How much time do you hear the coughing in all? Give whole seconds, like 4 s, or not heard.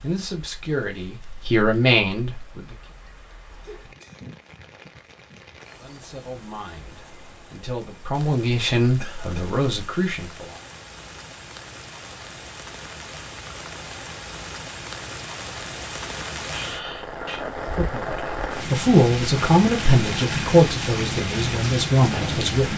2 s.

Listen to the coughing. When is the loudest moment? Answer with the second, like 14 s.
17 s.